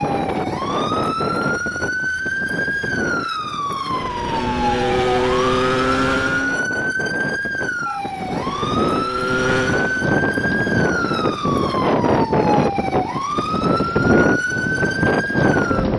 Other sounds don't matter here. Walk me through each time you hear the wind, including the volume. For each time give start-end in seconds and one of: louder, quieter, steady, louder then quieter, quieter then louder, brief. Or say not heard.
0.0-15.9 quieter then louder.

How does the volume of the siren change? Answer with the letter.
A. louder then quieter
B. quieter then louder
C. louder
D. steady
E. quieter
D.